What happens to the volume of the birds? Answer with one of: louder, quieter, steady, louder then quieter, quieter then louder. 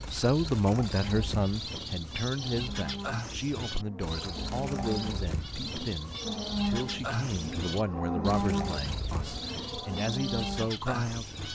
steady.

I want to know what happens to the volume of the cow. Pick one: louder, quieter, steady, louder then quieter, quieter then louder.
louder then quieter.